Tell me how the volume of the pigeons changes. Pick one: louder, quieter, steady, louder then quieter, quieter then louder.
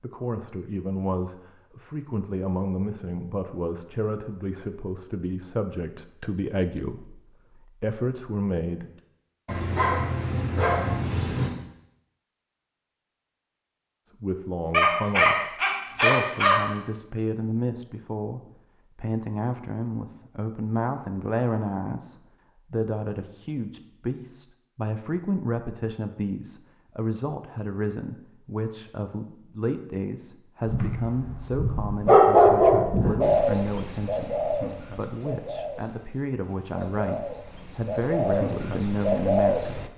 quieter then louder.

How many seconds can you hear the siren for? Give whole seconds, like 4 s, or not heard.
not heard.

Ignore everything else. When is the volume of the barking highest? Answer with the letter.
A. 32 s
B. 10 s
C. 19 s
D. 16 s
A.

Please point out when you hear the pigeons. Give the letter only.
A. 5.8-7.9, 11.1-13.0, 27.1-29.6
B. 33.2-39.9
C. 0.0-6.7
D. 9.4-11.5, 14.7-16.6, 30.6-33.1
B.